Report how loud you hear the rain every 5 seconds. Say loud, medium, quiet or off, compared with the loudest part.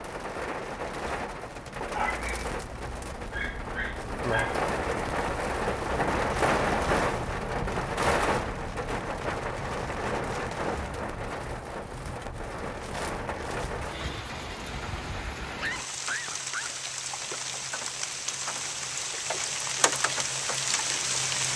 medium, loud, medium, medium, loud.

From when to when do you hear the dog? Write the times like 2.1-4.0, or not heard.
1.9-4.6, 15.4-16.7.